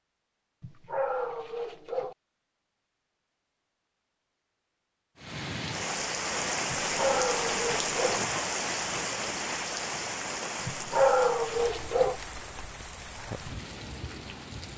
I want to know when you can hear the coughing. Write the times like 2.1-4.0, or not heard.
not heard.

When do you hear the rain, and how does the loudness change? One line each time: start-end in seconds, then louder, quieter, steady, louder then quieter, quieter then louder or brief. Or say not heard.
5.2-14.7 quieter.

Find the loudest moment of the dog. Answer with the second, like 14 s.
11 s.